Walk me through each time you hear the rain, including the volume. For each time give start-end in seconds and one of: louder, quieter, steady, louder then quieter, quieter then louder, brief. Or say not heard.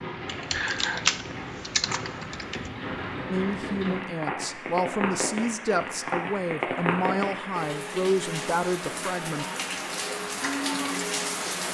0.0-11.6 louder.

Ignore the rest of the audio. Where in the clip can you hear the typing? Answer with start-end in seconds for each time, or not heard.
0.2-2.7.